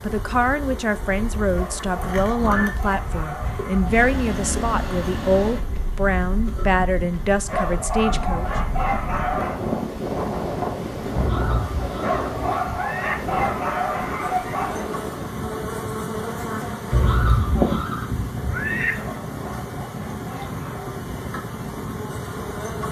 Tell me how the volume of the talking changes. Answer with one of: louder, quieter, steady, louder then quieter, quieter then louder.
steady.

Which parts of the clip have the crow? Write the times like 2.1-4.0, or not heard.
not heard.